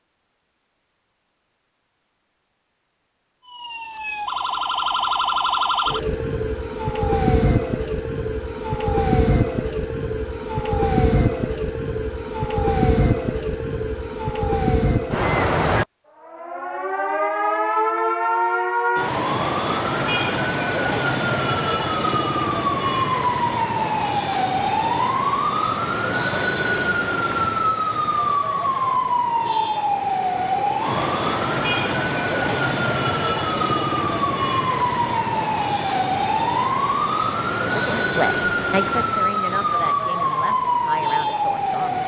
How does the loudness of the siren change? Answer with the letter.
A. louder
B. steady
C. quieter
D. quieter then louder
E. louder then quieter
B.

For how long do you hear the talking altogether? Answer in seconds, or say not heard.
4 s.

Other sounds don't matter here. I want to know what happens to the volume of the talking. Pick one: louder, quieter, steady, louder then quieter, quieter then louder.
quieter.